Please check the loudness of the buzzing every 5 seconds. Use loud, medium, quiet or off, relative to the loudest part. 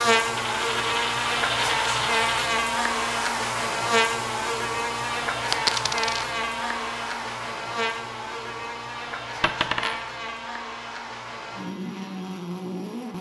loud, medium, medium.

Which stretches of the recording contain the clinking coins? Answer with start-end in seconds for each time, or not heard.
0.3-2.5, 5.5-6.2, 9.4-10.1.